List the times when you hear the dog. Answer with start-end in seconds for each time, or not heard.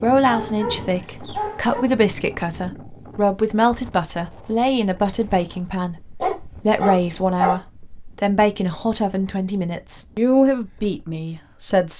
0.2-1.8, 6.2-7.6.